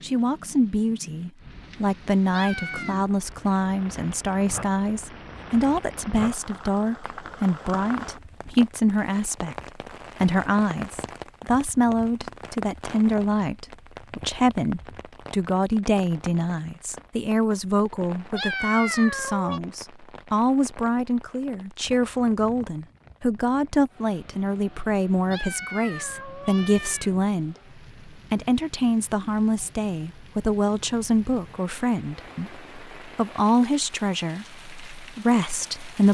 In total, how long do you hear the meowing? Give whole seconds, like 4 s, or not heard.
4 s.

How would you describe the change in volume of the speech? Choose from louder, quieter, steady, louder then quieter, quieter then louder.
steady.